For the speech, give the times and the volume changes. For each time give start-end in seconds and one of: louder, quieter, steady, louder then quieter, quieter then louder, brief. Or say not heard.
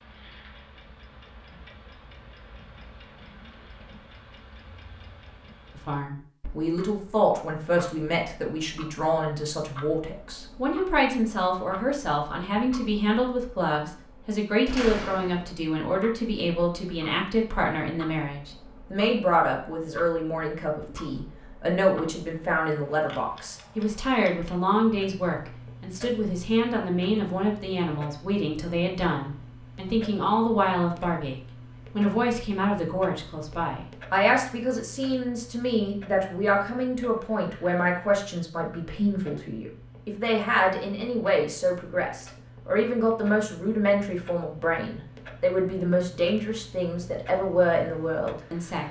5.8-48.8 steady.